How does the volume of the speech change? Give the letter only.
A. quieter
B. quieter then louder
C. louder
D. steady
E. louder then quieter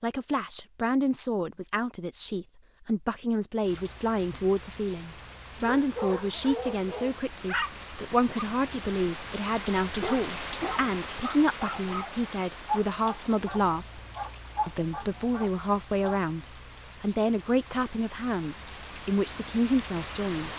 D.